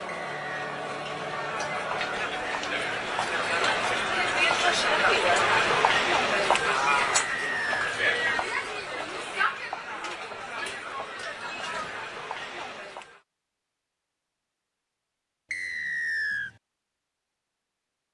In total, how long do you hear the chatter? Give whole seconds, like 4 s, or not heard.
13 s.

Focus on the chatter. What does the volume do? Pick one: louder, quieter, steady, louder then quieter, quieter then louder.
louder then quieter.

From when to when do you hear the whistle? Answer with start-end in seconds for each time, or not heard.
0.1-0.7, 7.2-8.0, 15.5-16.5.